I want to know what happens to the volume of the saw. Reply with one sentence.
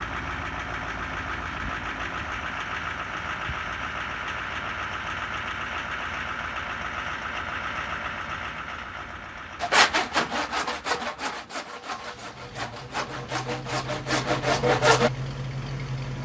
The volume of the saw goes down, then up.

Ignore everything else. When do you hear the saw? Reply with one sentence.
The saw can be heard from 9.6 to 15.1 s.